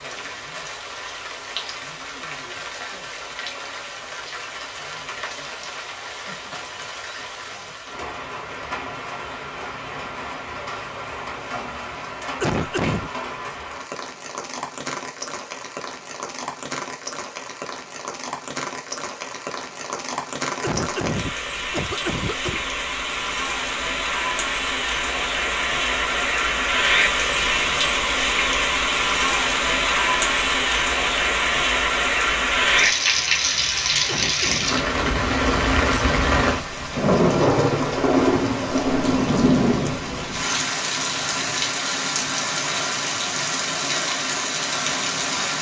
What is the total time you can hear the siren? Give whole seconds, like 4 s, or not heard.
not heard.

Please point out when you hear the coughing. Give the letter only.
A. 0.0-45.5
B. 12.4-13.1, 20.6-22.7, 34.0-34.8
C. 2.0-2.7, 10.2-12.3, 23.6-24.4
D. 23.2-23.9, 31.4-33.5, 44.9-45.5
B.